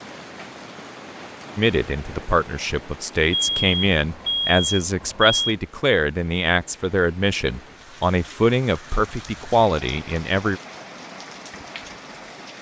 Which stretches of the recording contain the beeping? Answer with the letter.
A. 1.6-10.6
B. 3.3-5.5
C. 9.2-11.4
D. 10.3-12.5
B.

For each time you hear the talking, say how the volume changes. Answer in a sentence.
You can hear the talking from 1.6 to 10.6 s, at a steady volume.